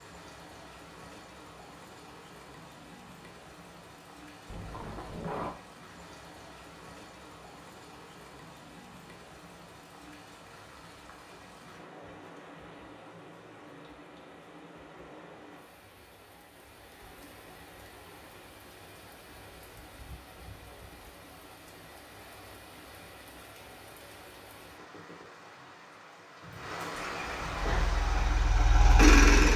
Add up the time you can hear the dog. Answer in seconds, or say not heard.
not heard.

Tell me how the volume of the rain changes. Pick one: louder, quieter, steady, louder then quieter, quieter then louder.
louder.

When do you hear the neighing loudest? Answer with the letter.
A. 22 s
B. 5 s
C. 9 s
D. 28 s
B.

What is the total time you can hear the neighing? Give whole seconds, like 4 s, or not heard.
2 s.